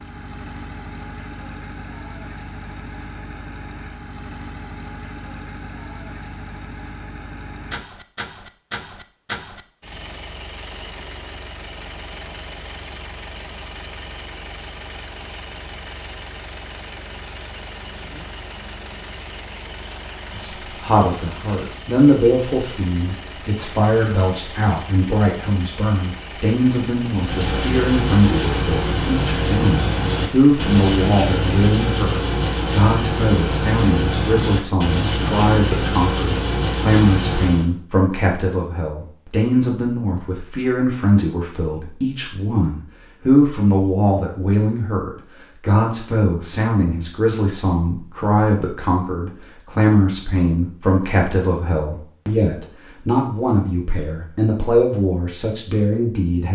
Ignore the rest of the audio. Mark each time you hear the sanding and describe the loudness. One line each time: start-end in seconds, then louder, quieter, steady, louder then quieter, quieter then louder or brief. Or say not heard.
27.1-37.7 steady.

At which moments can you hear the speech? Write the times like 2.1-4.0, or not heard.
20.3-56.4.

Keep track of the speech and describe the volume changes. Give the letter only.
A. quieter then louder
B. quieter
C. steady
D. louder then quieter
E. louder
C.